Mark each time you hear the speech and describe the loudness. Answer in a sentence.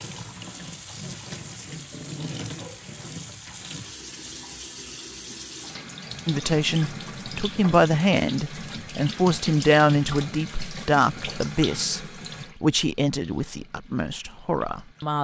The speech can be heard from 6.2 to 15.1 s, getting quieter.